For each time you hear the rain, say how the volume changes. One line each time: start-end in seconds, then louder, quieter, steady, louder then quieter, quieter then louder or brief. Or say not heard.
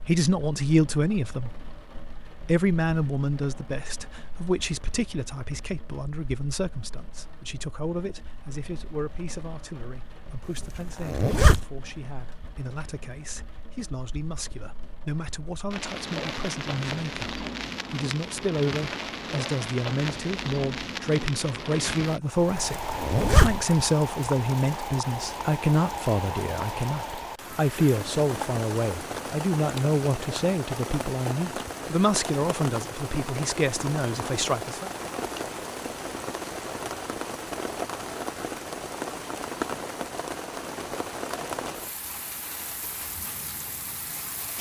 0.0-44.5 louder.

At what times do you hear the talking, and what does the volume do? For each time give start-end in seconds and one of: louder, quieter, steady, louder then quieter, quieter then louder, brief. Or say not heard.
0.1-1.6 brief
2.4-34.9 quieter then louder.